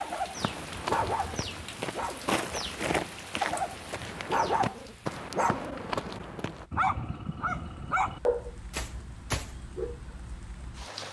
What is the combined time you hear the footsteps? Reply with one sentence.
The footsteps can be heard for 6 seconds in total.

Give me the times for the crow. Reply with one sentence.
The crow can't be heard in this clip.